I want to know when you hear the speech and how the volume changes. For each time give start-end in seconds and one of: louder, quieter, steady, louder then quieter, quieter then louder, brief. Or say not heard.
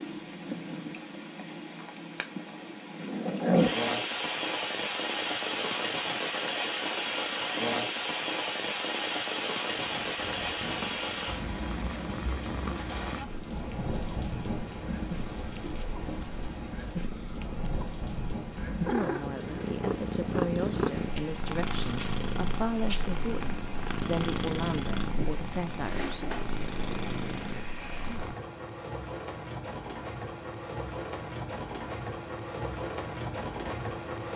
18.9-26.4 steady.